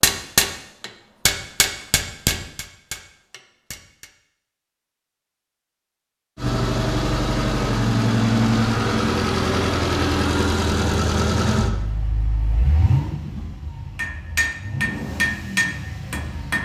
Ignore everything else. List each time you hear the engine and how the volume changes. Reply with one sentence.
The engine can be heard from 6.3 to 16.6 s, getting quieter.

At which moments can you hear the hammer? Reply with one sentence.
The hammer can be heard from 0.0 to 4.1 s and from 13.9 to 16.6 s.